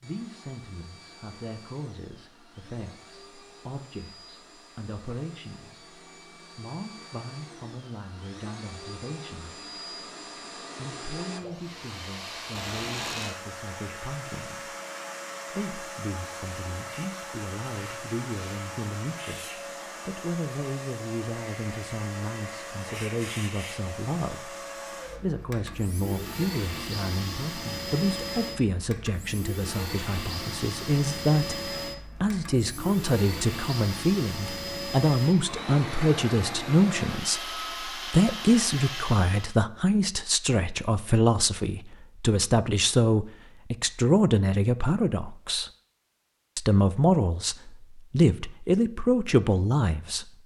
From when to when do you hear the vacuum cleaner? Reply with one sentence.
You can hear the vacuum cleaner from 0.0 to 39.6 s.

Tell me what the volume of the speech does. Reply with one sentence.
The volume of the speech goes up.